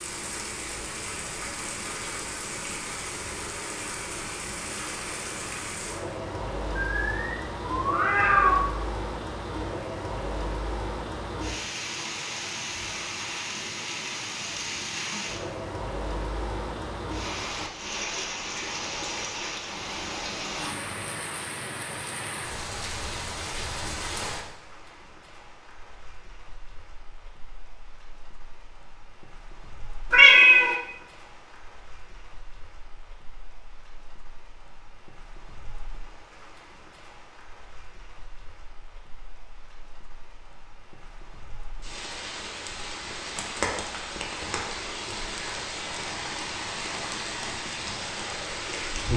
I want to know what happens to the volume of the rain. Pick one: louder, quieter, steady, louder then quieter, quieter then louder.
quieter then louder.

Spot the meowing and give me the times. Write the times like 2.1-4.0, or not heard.
6.8-8.6, 30.1-30.8.